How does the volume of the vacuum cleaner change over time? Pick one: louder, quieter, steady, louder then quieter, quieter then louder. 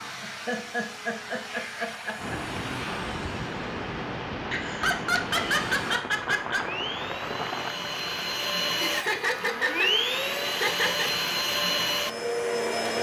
louder.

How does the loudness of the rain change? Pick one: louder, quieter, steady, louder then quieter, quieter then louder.
quieter.